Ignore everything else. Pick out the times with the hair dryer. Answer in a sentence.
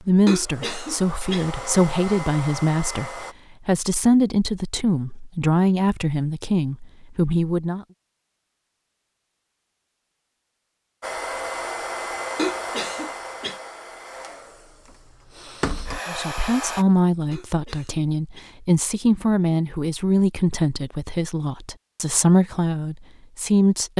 You can hear the hair dryer from 0.2 to 3.4 s and from 11.0 to 16.9 s.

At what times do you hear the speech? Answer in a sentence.
You can hear the speech from 0.1 to 7.8 s and from 16.1 to 23.9 s.